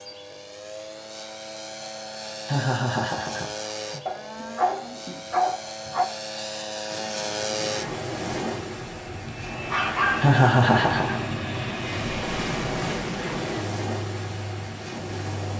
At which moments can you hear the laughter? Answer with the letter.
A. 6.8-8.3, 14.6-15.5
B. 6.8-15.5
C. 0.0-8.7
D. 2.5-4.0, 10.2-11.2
D.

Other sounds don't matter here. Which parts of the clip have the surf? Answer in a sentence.
You can hear the surf from 6.8 to 15.5 s.